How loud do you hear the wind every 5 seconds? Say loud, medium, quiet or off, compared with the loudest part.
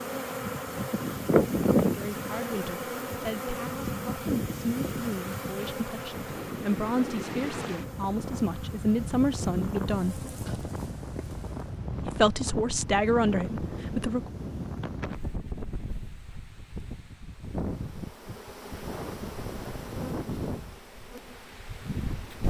medium, loud, loud, loud, loud.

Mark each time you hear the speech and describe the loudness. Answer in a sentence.
The speech can be heard from 1.9 to 10.2 s, getting louder; and briefly from 12.0 to 14.3 s.